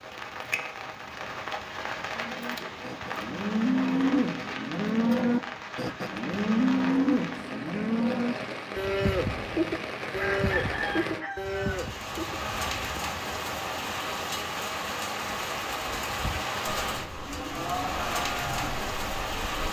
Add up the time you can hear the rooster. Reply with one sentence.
You can hear the rooster for 2 seconds altogether.